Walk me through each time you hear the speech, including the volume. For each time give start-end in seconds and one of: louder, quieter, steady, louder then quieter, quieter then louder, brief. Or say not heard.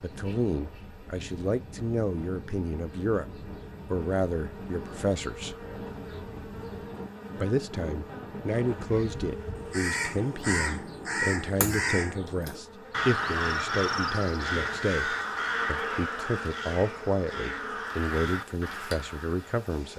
0.0-5.5 steady
7.3-19.9 steady.